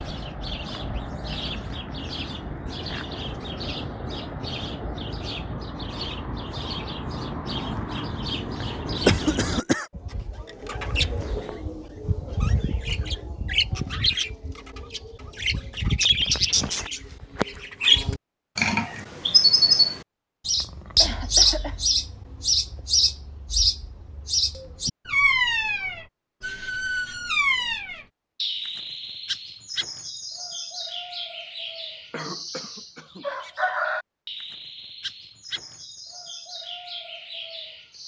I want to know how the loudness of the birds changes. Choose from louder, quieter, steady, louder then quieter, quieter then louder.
louder then quieter.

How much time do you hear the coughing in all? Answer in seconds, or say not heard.
3 s.